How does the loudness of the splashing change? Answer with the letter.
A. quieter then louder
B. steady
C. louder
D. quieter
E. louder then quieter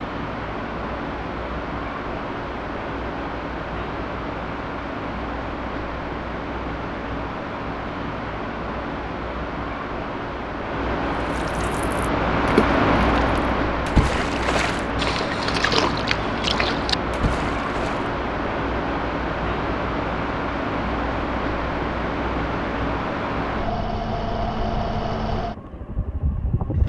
B.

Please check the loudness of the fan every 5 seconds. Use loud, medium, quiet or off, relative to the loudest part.
medium, medium, loud, loud, loud, medium.